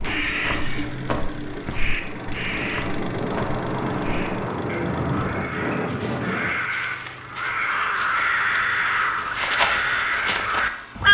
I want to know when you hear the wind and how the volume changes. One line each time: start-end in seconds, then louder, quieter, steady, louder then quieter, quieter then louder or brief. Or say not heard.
0.0-6.5 louder.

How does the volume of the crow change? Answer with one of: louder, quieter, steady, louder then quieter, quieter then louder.
louder.